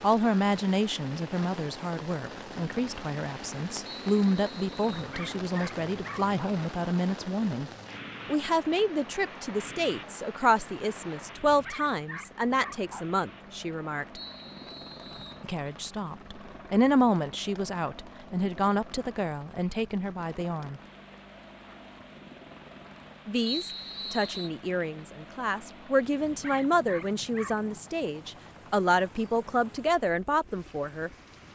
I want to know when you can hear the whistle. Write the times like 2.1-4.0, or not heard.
3.9-5.1, 14.2-15.4, 23.4-24.5.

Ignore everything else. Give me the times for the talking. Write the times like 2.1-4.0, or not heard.
0.0-14.2, 15.4-20.8, 23.2-31.1.